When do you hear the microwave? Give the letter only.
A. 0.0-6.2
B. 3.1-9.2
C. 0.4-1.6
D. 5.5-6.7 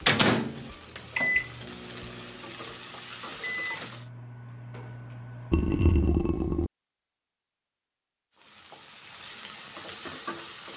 A.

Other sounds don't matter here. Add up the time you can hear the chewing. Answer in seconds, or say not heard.
not heard.